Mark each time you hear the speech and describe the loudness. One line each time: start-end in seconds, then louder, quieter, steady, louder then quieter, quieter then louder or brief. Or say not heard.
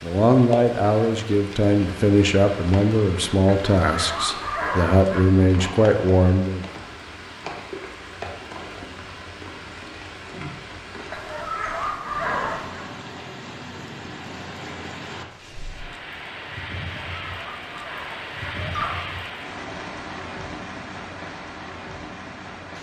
0.0-6.7 steady.